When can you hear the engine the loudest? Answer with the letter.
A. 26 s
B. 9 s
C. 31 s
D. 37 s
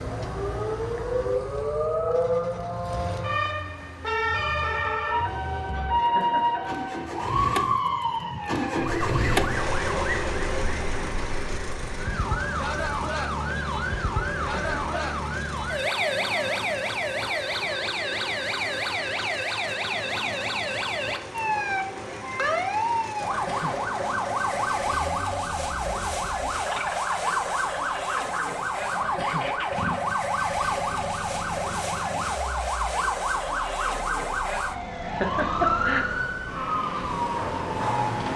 B.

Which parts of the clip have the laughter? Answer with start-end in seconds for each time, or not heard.
6.0-6.7, 14.3-15.1, 35.0-36.0.